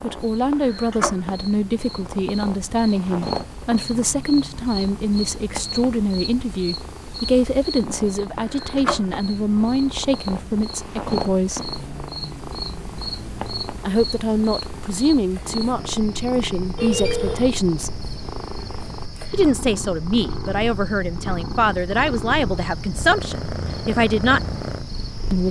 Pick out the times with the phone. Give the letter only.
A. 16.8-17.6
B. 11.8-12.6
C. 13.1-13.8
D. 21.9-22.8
A.